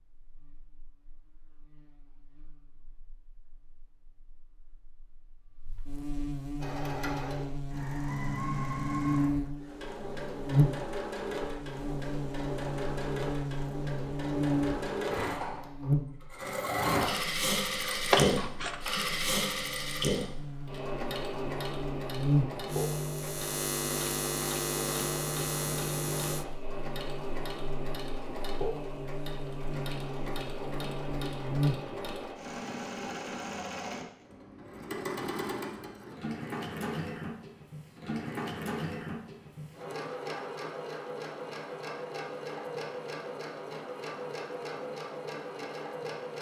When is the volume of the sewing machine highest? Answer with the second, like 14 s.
18 s.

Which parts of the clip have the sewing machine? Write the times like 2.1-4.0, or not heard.
6.5-46.3.